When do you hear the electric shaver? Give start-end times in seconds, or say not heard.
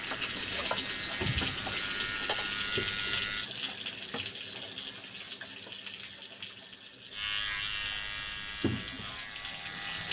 0.0-3.5, 7.1-10.0.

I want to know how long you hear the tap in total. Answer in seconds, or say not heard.
10 s.